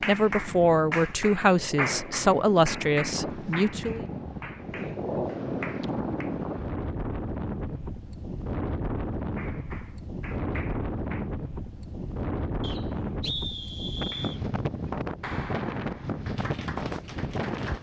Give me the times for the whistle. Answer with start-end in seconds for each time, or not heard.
12.6-14.4.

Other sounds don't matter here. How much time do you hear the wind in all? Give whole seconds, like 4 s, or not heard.
18 s.